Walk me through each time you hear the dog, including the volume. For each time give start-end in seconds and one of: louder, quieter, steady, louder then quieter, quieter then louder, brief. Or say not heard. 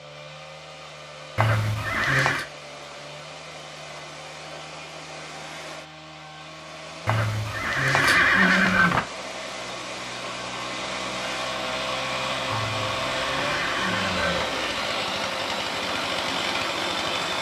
not heard.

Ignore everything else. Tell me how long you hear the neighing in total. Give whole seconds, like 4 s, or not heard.
5 s.